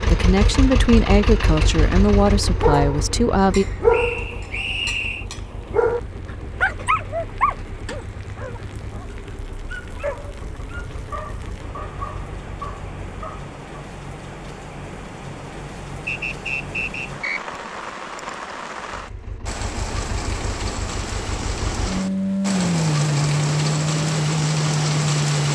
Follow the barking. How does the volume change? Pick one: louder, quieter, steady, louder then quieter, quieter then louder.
quieter.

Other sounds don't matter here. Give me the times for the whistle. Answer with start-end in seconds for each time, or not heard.
3.9-5.2, 16.1-17.4.